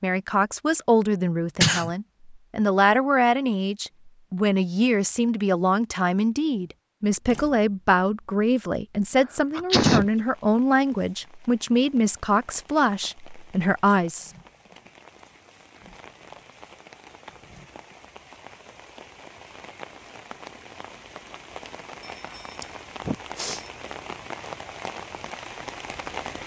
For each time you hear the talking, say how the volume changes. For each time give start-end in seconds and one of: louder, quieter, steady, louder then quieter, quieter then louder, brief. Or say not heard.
0.0-14.3 steady.